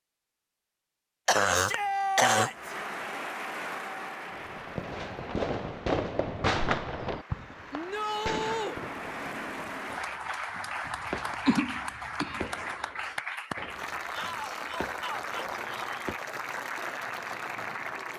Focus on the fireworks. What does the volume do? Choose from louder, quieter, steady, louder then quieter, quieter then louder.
quieter.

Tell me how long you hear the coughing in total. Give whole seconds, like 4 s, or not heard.
3 s.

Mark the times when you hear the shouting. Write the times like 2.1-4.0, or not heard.
1.5-2.8, 7.7-8.8, 14.1-16.1.